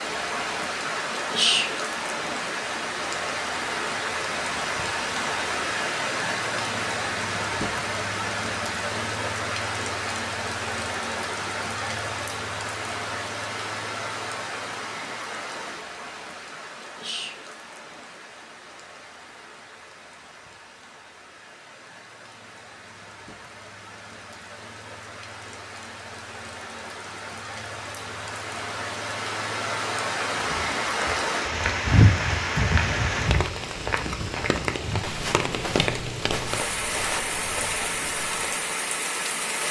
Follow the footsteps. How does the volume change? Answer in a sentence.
The loudness of the footsteps goes down.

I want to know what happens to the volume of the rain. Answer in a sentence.
The loudness of the rain goes down, then up.